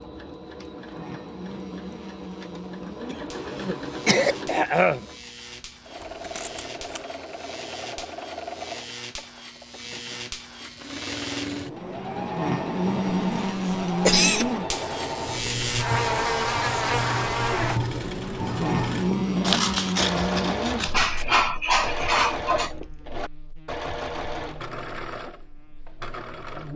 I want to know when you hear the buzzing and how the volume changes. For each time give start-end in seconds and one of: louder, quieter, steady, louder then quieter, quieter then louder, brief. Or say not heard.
0.0-26.7 louder then quieter.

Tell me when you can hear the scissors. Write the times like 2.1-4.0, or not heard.
6.0-7.0, 19.4-21.2.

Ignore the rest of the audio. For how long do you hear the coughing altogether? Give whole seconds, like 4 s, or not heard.
5 s.